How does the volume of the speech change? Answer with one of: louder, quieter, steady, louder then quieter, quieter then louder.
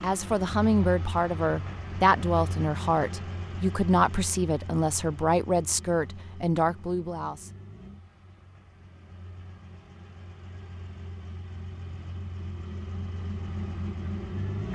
steady.